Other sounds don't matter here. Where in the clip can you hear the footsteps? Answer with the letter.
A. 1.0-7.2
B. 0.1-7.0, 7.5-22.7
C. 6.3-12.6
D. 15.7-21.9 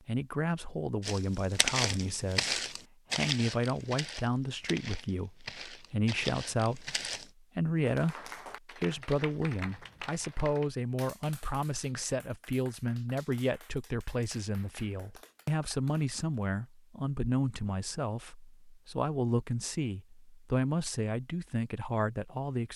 A.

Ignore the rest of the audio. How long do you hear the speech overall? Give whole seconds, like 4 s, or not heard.
22 s.